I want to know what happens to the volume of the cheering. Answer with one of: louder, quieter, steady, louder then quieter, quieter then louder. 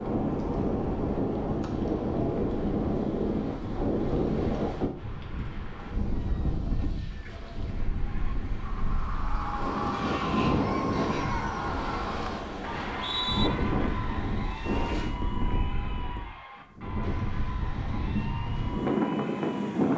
quieter.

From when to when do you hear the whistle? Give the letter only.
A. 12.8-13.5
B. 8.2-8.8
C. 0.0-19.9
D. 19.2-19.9
A.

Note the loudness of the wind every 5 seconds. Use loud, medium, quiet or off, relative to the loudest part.
loud, medium, loud, loud.